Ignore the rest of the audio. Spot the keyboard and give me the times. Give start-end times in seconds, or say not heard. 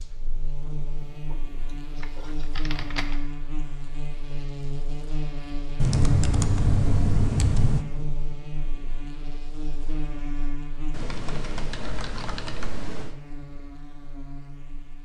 1.7-3.0, 5.8-7.8, 10.9-13.2.